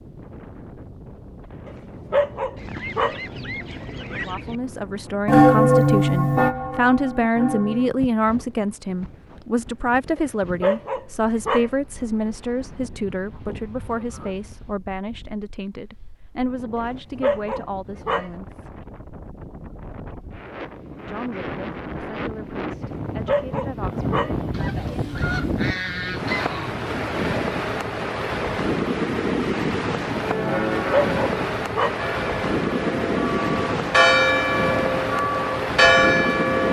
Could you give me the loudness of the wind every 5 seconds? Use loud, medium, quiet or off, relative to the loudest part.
quiet, quiet, quiet, quiet, medium, loud, loud, loud.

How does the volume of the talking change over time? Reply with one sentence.
The volume of the talking goes down.